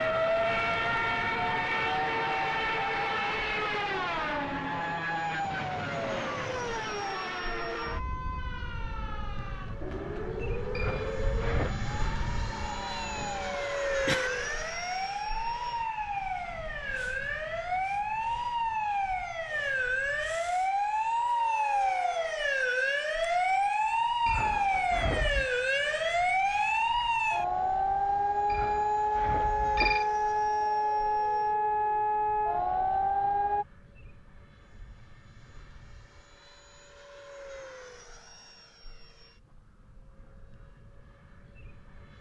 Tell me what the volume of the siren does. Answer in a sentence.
The loudness of the siren goes down, then up.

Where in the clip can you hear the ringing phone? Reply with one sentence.
You can hear the ringing phone from 10.8 to 11.8 s, from 24.2 to 25.5 s and from 28.5 to 30.1 s.